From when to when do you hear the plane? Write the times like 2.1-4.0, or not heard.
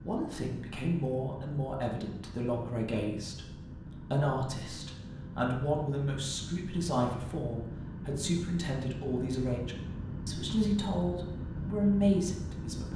0.0-12.9.